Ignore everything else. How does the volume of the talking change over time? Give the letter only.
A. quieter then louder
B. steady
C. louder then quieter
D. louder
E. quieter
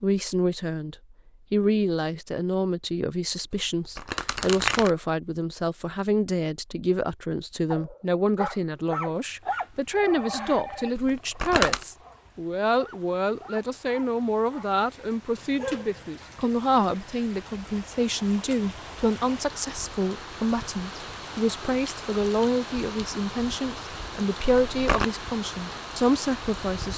B.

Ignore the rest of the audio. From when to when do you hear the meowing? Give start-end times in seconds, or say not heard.
not heard.